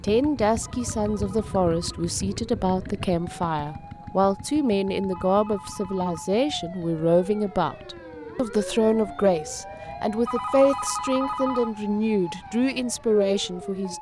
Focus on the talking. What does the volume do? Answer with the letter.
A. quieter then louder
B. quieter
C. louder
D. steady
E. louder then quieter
D.